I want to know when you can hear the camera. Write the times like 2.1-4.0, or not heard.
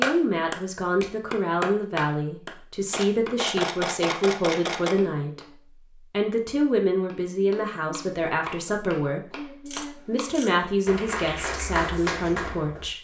2.9-5.0, 9.7-10.6.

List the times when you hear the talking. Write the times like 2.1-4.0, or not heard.
0.0-12.9.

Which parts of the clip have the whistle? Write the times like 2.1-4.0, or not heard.
not heard.